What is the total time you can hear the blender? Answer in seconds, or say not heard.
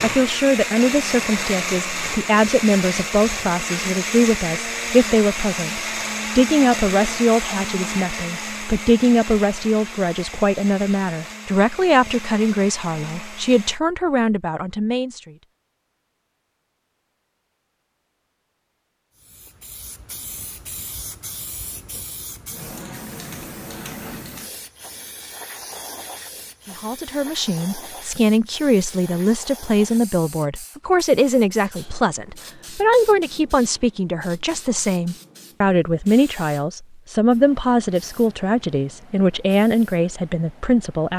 14 s.